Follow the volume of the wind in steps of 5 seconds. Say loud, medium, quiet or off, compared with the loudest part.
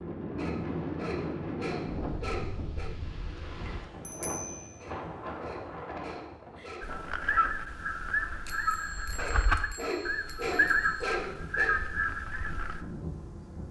loud, medium, medium.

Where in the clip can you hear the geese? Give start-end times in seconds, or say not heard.
6.8-12.8.